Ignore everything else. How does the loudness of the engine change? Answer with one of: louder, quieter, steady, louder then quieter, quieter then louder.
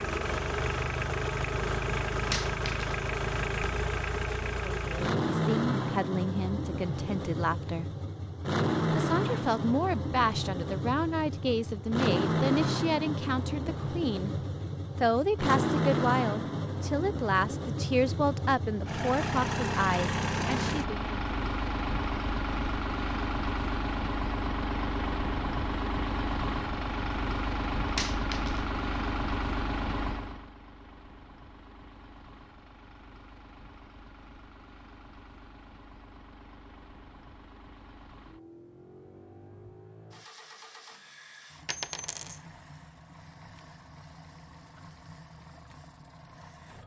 quieter.